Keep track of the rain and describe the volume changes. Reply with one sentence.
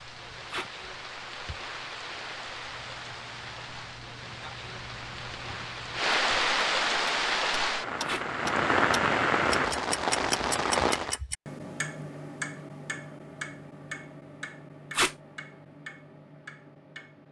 The loudness of the rain goes up.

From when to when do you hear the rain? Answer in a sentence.
You can hear the rain from 0.0 to 11.2 s.